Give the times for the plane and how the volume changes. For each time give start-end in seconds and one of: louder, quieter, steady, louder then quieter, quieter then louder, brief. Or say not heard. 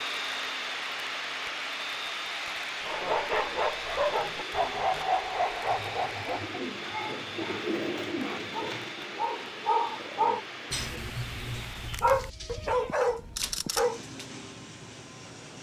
0.0-15.5 quieter.